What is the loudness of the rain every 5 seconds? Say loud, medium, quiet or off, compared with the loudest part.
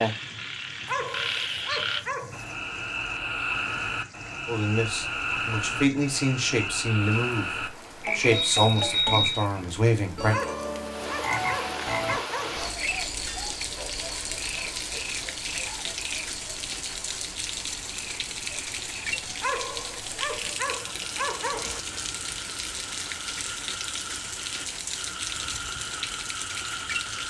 quiet, quiet, loud, loud, loud, loud.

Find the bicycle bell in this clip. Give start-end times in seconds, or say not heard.
8.3-9.4.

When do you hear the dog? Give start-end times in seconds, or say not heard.
0.8-2.5, 10.3-12.7, 19.4-21.8.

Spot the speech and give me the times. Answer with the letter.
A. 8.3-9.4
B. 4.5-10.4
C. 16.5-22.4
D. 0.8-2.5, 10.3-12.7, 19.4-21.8
B.